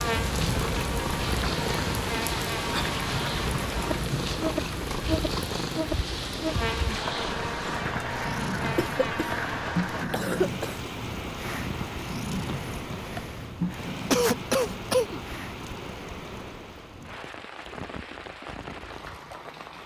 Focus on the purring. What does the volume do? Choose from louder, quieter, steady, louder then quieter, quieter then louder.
quieter.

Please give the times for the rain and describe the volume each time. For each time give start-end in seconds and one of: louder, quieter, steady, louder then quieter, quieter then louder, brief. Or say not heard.
0.0-19.8 quieter.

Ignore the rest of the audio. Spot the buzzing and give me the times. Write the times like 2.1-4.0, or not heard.
0.0-10.1.